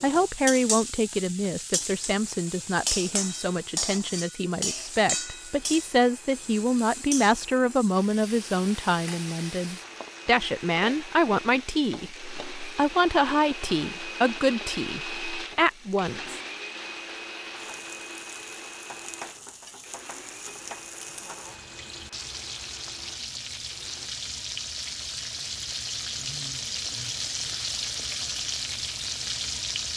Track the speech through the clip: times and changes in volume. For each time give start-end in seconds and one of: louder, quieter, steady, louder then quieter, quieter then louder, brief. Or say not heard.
0.0-16.4 steady.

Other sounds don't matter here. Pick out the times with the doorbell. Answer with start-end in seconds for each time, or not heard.
not heard.